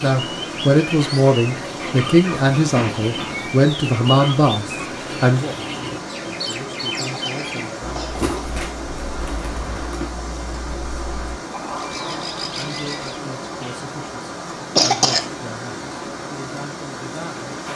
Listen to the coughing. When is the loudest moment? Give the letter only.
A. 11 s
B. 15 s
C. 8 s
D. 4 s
B.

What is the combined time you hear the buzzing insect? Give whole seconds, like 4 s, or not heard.
not heard.